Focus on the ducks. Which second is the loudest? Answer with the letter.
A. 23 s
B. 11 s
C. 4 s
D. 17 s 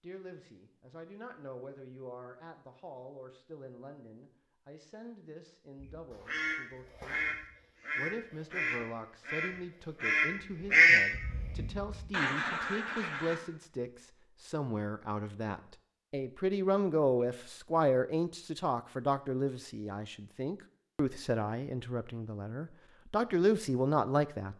B.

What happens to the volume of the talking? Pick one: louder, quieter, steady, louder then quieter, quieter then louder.
louder.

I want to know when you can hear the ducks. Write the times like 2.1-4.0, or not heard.
5.8-13.3.